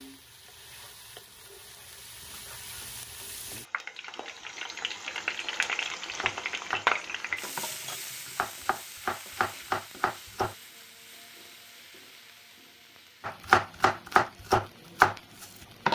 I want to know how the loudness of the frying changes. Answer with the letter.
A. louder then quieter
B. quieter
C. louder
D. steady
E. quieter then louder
A.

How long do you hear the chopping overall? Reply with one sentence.
The chopping can be heard for 6 seconds in total.